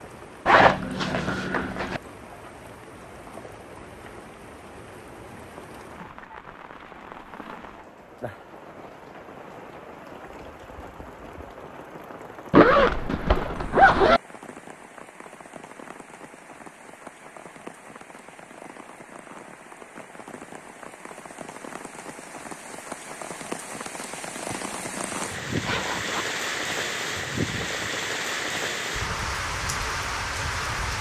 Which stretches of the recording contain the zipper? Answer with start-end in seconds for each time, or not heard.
0.5-2.0, 12.5-14.2, 24.4-26.2.